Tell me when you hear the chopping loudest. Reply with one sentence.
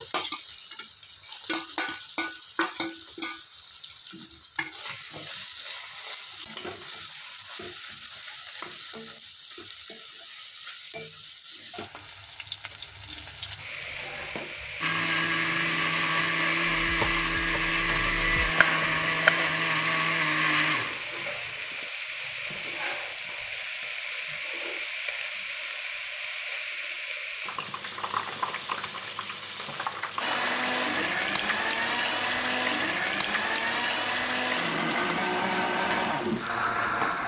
The volume of the chopping peaks at 19 seconds.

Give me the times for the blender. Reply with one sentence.
You can hear the blender from 14.8 to 21.9 s and from 30.2 to 37.2 s.